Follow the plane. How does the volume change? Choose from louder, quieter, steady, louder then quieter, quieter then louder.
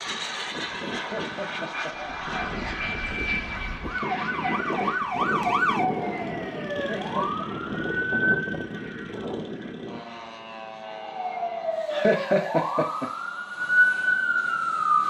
quieter.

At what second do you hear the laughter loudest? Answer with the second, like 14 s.
12 s.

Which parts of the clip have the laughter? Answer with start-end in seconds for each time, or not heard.
0.9-2.1, 6.8-7.5, 11.9-13.1.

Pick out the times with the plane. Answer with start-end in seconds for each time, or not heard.
0.0-15.0.